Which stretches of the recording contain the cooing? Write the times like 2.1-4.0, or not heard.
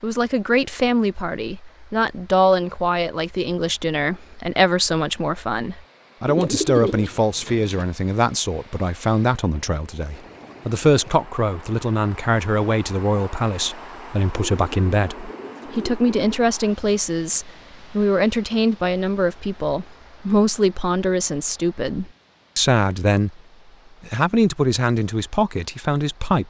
6.2-7.8, 14.3-16.5.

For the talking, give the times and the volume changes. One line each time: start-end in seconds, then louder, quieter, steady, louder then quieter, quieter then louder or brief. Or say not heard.
0.0-23.4 steady
24.0-26.4 brief.